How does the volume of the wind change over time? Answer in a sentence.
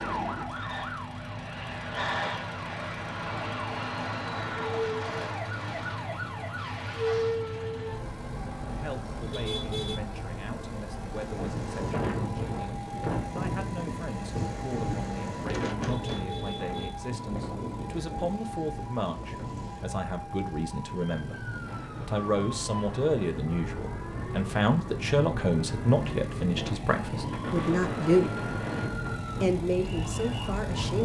The volume of the wind goes down, then up.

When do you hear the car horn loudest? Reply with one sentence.
The volume of the car horn peaks at 10 seconds.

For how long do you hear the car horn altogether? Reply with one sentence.
You can hear the car horn for 2 seconds altogether.